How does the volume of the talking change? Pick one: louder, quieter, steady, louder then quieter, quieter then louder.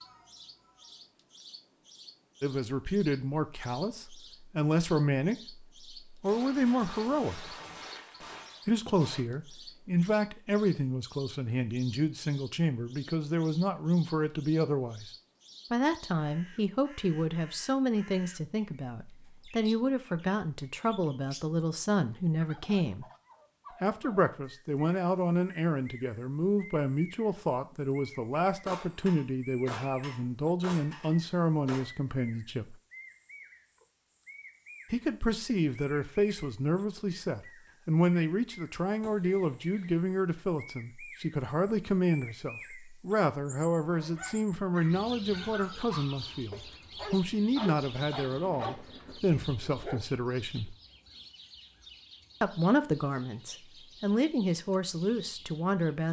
steady.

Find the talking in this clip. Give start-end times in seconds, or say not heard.
2.4-7.5, 8.7-15.1, 15.7-23.1, 23.8-32.8, 34.9-50.8, 52.4-56.0.